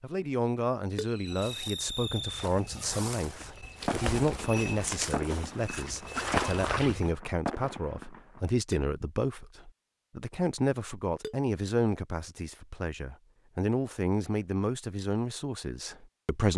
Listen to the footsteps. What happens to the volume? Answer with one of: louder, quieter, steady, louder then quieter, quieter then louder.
louder.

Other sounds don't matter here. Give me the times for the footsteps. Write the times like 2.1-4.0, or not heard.
1.2-7.2.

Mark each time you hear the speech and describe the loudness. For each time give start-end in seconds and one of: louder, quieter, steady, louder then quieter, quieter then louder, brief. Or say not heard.
0.0-16.5 steady.